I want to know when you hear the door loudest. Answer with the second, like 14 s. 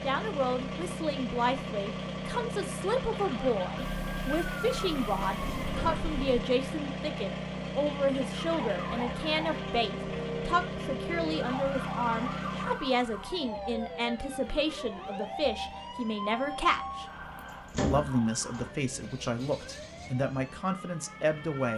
18 s.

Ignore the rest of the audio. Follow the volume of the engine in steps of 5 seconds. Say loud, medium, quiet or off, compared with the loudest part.
loud, loud, loud, quiet, quiet.